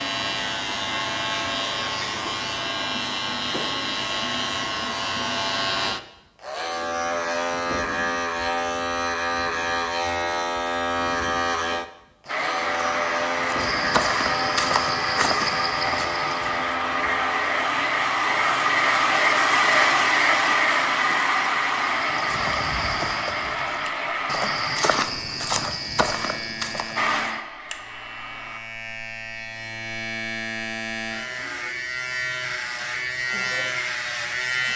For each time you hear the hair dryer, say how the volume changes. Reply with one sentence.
You can hear the hair dryer from 12.2 to 25.1 s, getting louder then quieter; and briefly from 26.9 to 28.6 s.